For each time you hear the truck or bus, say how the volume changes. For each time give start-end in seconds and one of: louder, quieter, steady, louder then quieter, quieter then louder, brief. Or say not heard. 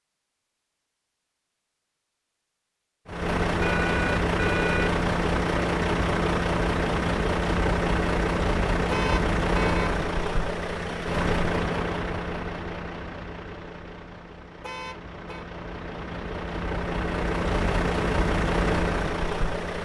3.0-19.8 quieter then louder.